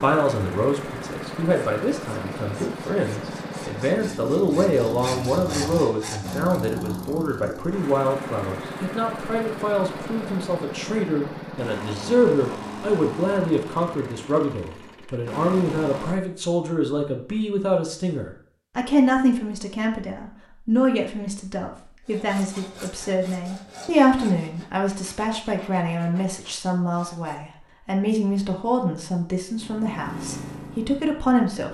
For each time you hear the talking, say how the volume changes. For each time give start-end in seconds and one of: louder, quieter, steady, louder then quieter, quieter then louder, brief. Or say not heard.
0.0-31.7 steady.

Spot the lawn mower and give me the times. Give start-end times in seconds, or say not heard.
0.0-16.2, 29.5-31.7.